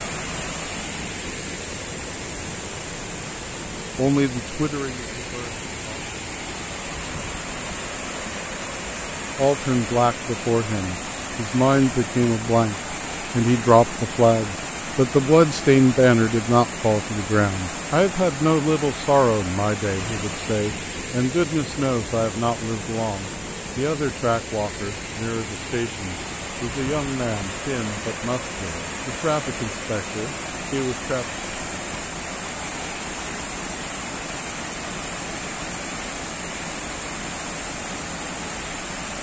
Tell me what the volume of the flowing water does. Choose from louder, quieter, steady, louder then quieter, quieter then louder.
steady.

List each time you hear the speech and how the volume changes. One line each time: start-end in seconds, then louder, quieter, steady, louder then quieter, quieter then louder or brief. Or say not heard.
3.8-6.1 brief
9.3-31.2 quieter.